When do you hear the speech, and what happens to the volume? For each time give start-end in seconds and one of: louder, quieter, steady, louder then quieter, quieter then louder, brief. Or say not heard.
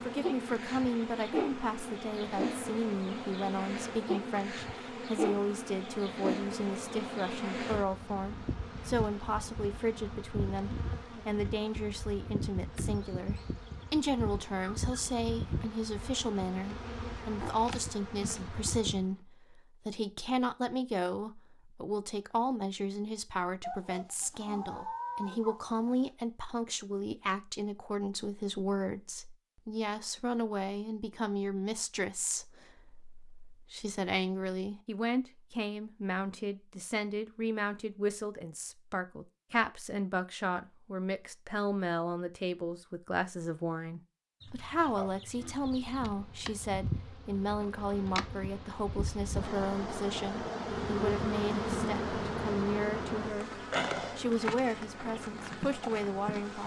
0.0-56.6 steady.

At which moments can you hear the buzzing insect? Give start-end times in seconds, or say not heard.
0.0-19.1, 45.5-56.6.